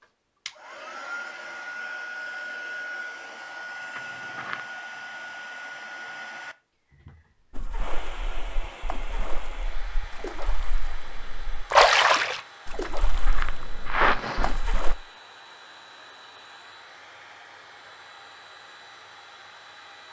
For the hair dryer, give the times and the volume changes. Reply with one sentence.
You can hear the hair dryer from 0.0 to 20.0 s, getting quieter.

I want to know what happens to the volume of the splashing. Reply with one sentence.
The loudness of the splashing goes up, then down.